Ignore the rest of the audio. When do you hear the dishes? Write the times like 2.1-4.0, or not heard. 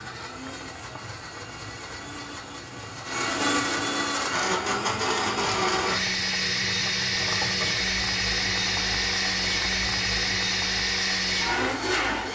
not heard.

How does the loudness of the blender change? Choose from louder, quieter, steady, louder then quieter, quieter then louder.
louder.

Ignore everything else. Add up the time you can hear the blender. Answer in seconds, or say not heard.
12 s.